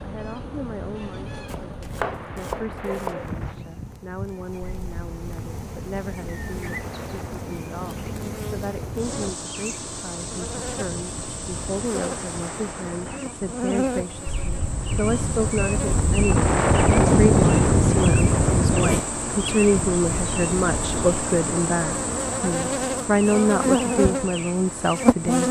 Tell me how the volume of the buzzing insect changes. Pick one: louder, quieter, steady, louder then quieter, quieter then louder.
louder.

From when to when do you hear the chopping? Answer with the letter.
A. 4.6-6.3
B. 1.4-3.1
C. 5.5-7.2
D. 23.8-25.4
B.